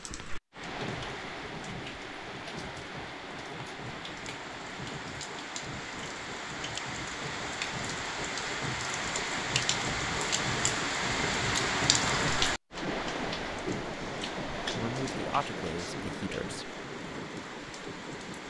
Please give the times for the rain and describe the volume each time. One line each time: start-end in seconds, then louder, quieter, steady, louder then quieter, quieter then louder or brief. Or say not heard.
0.0-18.4 louder then quieter.